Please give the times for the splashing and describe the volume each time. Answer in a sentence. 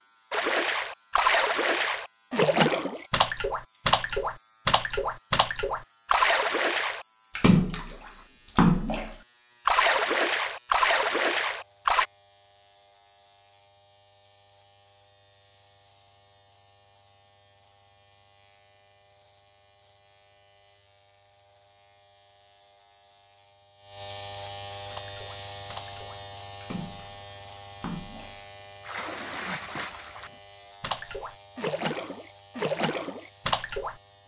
You can hear the splashing from 0.3 to 12.1 s, at a steady volume; and from 24.9 to 34.2 s, getting louder.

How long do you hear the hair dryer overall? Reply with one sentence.
You can't hear the hair dryer here.